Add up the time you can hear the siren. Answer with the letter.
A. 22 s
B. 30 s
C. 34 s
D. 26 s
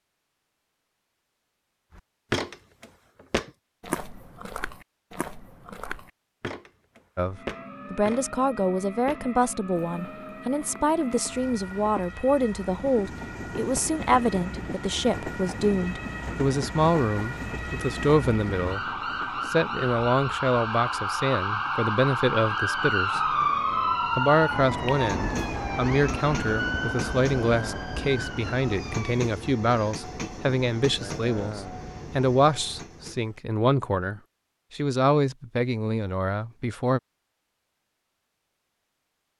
A.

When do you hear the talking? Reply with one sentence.
You can hear the talking from 7.2 to 18.9 s, from 19.4 to 23.4 s and from 24.1 to 37.0 s.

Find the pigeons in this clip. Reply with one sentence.
The pigeons can't be heard in this clip.